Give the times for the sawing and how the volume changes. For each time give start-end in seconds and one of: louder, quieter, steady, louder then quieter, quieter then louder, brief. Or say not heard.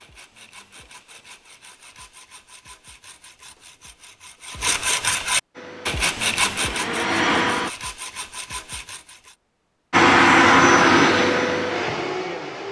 0.0-9.3 louder then quieter.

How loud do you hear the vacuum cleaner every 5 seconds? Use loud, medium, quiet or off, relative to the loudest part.
off, medium, loud.